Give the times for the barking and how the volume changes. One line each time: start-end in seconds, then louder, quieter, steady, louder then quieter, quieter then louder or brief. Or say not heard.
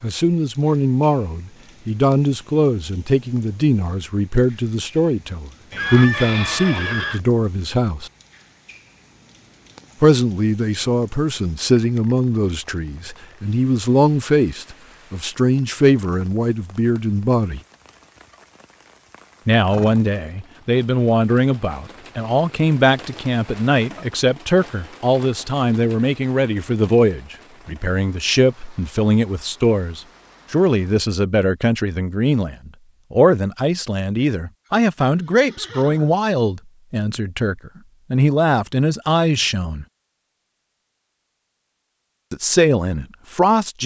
not heard.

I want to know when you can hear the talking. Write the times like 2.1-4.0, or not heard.
0.0-8.1, 10.0-17.6, 19.4-39.9, 42.3-43.8.